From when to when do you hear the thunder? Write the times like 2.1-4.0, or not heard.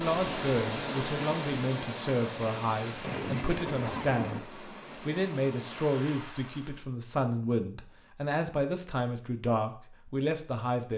2.5-4.4.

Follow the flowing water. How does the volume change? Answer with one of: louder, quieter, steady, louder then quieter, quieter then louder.
quieter.